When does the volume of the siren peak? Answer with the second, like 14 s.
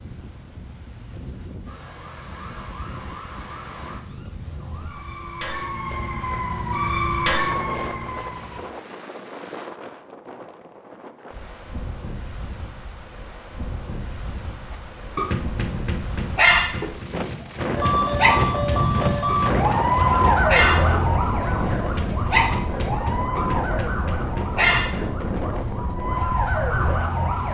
20 s.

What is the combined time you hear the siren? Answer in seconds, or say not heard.
17 s.